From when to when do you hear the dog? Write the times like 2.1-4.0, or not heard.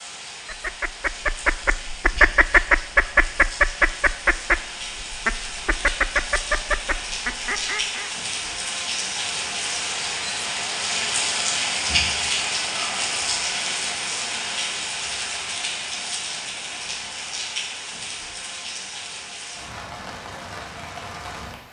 not heard.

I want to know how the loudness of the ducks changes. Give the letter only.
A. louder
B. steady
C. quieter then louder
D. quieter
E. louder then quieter
E.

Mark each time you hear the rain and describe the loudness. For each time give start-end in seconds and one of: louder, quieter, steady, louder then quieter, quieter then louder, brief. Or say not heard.
0.0-21.6 louder then quieter.